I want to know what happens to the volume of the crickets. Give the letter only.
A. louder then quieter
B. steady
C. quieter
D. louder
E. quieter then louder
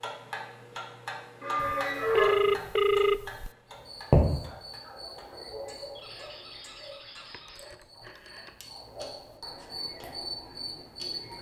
E.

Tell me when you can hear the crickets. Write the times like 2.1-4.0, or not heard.
3.6-11.3.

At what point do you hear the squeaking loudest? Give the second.
2 s.